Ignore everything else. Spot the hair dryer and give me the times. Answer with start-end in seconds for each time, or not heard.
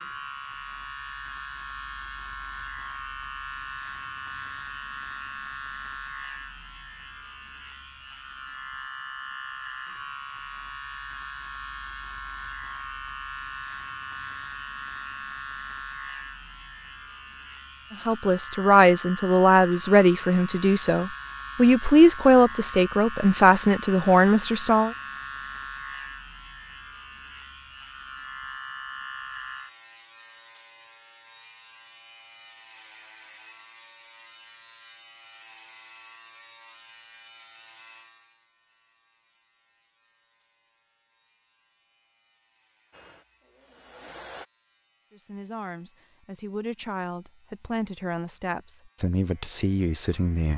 42.9-44.5.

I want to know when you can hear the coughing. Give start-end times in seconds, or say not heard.
not heard.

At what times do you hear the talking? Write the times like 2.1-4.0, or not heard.
18.1-24.9, 45.1-50.5.